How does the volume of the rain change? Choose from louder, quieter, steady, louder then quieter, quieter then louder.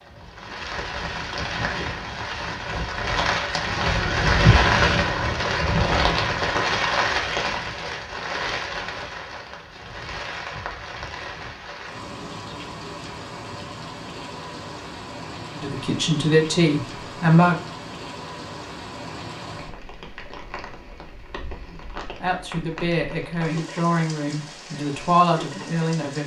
quieter.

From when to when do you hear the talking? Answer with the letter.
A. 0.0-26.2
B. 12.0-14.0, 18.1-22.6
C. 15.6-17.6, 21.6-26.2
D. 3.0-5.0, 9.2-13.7
C.